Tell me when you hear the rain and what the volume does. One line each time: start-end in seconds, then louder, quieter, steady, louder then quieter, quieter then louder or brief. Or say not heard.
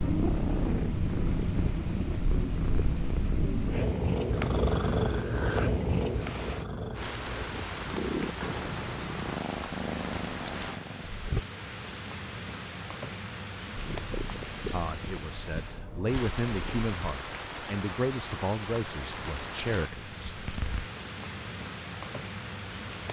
0.0-23.0 louder.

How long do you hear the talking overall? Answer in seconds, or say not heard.
6 s.